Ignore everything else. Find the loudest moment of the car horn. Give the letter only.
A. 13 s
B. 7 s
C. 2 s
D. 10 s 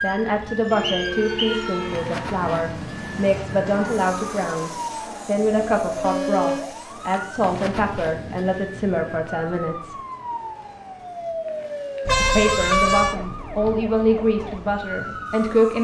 A.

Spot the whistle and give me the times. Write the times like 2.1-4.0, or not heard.
0.8-1.6.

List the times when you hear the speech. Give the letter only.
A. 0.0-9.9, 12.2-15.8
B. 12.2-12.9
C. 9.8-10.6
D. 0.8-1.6
A.